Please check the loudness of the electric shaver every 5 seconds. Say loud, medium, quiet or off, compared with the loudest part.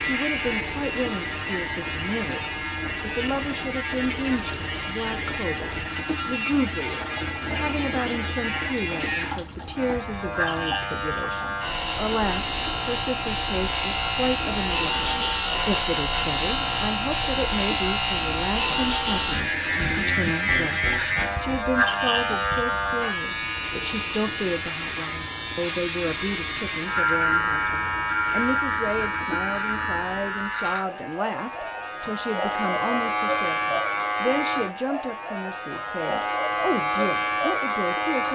medium, medium, loud, loud, loud, loud, loud, loud.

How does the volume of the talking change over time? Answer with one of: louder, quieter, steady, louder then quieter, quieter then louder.
steady.